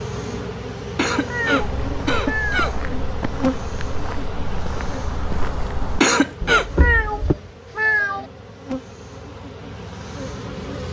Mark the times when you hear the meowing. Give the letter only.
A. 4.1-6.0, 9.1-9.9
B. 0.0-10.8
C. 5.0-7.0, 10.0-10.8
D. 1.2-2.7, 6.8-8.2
D.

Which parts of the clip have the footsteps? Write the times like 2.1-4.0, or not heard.
1.6-7.3.